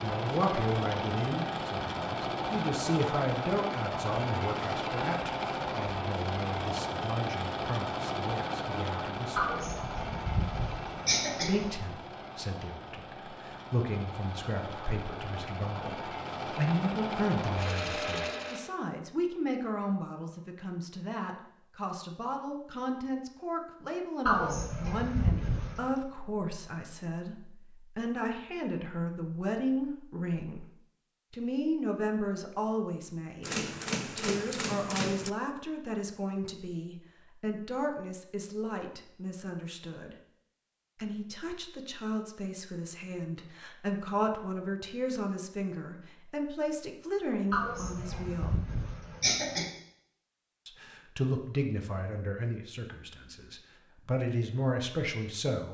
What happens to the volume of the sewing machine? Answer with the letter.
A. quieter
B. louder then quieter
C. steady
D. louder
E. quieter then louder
E.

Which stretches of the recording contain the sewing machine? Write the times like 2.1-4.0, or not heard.
0.0-18.8.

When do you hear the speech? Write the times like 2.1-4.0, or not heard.
0.0-9.4, 11.4-30.7, 31.3-33.5, 34.1-40.1, 41.0-48.6, 50.6-55.6.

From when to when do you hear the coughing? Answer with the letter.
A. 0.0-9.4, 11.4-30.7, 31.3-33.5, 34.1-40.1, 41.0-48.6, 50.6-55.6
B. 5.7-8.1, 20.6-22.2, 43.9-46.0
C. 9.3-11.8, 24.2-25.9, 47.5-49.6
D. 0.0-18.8
C.